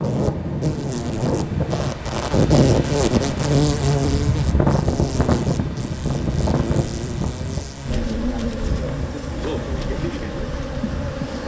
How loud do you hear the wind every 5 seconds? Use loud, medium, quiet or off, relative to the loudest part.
loud, loud, medium.